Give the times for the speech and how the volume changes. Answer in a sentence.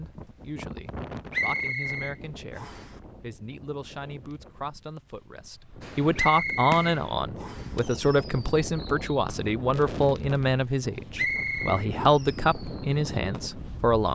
The speech can be heard from 0.0 to 14.0 s, getting louder.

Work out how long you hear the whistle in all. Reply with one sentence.
You can hear the whistle for 4 seconds altogether.